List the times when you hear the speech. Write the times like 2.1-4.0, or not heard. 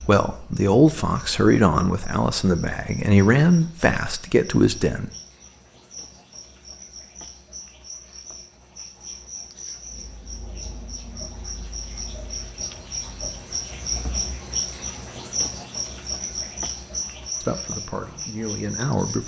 0.0-5.1, 17.4-19.2.